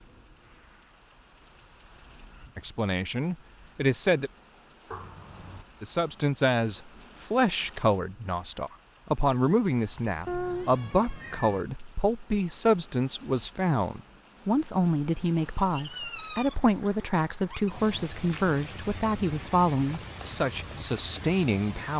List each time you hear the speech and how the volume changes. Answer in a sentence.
You can hear the speech briefly from 2.5 to 4.3 s; and from 5.8 to 21.9 s, at a steady volume.